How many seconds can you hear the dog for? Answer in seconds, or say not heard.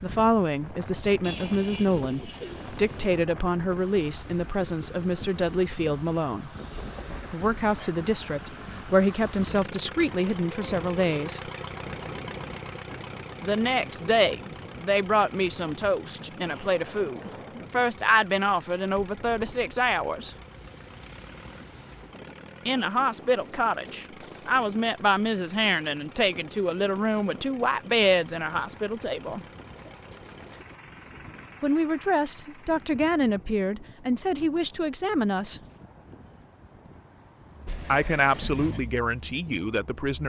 not heard.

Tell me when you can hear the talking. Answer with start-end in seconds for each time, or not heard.
0.0-6.5, 7.3-11.4, 13.4-20.4, 22.6-29.4, 31.6-35.6, 37.9-40.2.